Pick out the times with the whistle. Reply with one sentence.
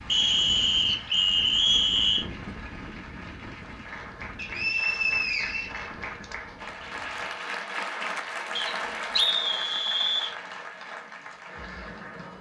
The whistle can be heard from 0.1 to 2.2 s, from 4.3 to 6.3 s and from 8.6 to 10.3 s.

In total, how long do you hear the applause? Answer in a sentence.
The applause can be heard for 12 seconds in total.